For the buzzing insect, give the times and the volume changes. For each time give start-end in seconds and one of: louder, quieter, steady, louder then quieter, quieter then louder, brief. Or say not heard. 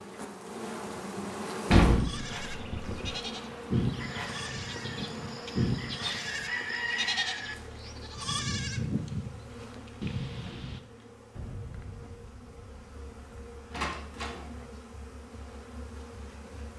0.0-16.7 quieter.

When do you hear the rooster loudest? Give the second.
7 s.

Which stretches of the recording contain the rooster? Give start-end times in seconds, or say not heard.
4.0-7.5.